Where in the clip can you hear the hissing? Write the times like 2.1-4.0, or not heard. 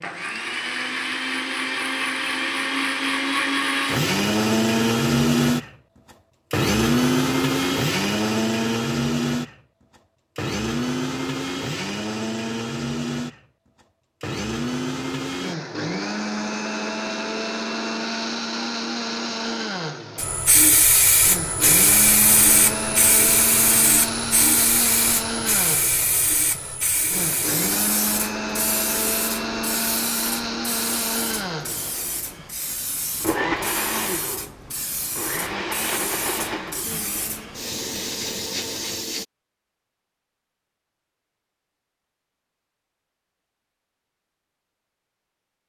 20.1-39.2.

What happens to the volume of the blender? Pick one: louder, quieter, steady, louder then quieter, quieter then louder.
quieter.